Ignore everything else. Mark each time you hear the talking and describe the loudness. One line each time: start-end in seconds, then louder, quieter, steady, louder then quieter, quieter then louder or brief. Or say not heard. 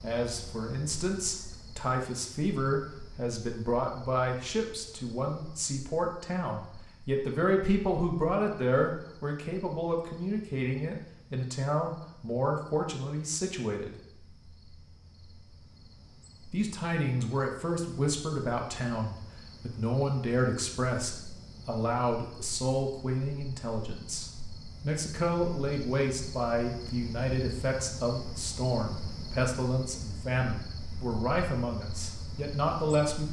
0.0-13.9 steady
16.5-33.2 steady.